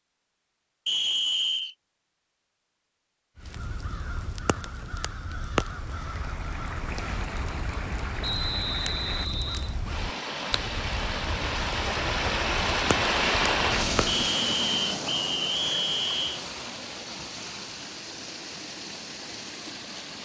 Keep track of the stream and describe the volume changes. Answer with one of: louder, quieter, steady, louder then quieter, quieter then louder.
louder then quieter.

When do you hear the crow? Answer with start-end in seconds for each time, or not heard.
3.4-14.2.